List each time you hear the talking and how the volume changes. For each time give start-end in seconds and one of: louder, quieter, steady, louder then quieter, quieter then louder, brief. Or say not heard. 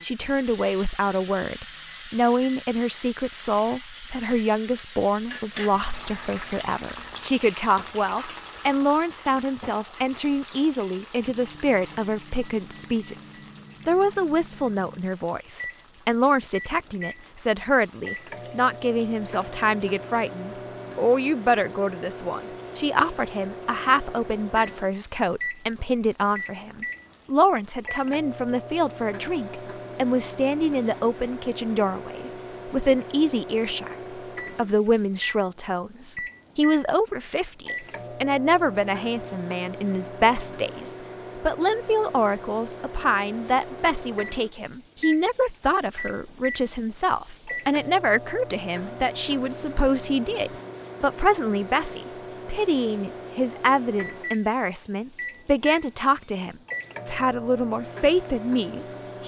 0.0-34.0 steady
34.5-59.2 steady.